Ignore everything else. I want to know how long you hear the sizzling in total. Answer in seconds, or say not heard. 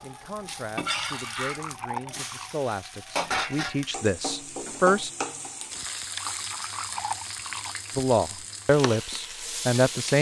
10 s.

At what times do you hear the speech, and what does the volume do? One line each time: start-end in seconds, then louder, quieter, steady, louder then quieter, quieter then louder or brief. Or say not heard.
0.0-5.1 louder
8.0-10.1 brief.